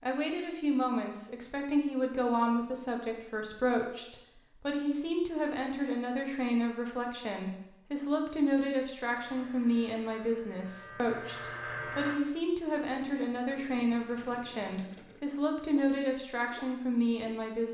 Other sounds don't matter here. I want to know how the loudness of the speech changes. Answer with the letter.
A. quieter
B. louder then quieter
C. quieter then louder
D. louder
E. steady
E.